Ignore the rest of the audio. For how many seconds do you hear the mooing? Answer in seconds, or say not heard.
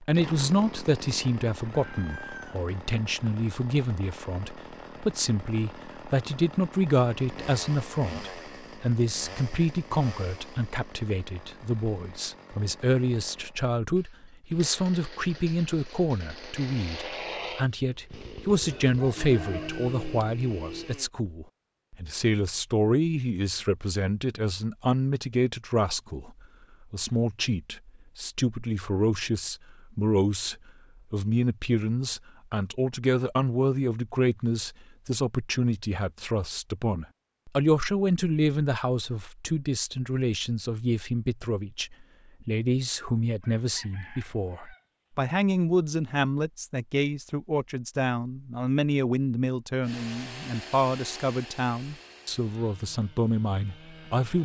not heard.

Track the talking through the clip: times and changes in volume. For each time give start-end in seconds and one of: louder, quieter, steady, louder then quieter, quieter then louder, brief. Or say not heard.
0.0-26.3 steady
26.9-54.4 steady.